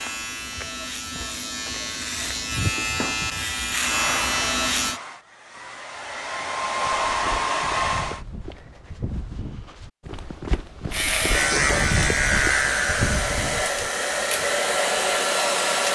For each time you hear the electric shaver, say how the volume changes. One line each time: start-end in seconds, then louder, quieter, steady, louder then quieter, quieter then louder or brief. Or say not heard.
0.0-5.0 louder
10.9-15.9 quieter.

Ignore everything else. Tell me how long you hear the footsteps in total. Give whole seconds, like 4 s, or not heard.
11 s.